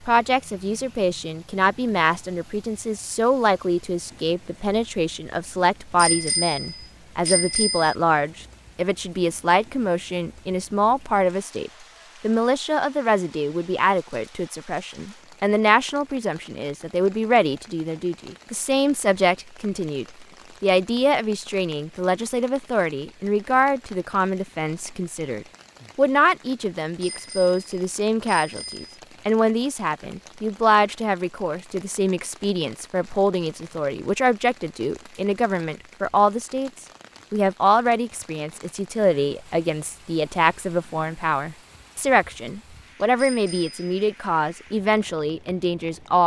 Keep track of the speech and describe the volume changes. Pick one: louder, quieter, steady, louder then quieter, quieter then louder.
steady.